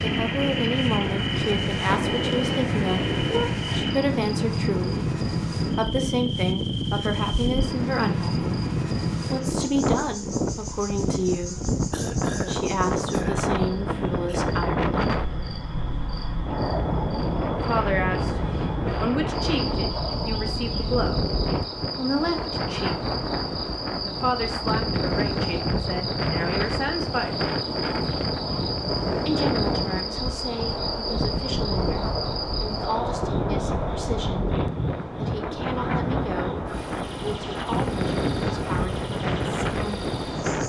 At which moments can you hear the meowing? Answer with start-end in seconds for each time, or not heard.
1.9-3.5.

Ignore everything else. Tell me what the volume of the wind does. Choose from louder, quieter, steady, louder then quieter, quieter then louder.
steady.